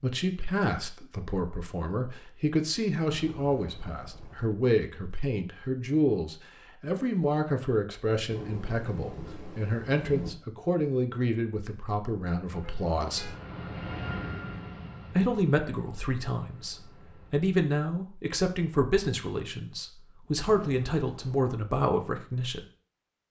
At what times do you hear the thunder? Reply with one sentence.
The thunder can be heard from 8.3 to 10.3 s.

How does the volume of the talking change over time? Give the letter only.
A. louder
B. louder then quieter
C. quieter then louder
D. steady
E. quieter
D.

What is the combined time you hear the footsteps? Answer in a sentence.
You can't hear the footsteps here.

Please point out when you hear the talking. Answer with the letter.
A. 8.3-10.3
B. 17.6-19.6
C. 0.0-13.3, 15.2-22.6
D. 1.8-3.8
C.